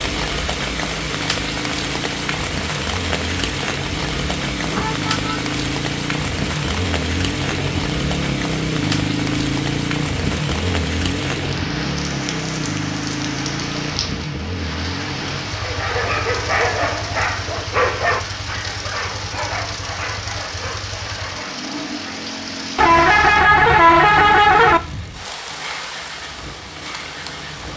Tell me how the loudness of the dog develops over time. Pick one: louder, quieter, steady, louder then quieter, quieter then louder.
quieter.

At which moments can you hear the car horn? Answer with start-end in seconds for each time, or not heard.
4.6-5.5, 22.8-24.8.